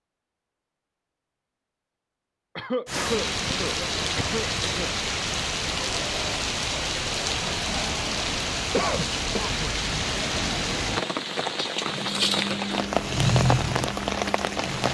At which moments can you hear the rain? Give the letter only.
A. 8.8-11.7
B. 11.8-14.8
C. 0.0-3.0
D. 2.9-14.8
D.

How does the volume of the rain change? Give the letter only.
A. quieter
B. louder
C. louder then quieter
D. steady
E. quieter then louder
D.